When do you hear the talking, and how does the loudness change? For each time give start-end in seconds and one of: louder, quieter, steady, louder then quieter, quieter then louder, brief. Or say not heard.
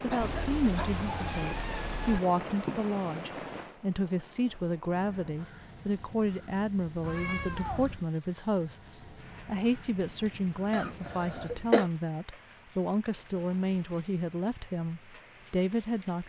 0.0-16.2 steady.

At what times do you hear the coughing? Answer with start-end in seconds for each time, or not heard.
0.1-1.1, 10.7-11.8.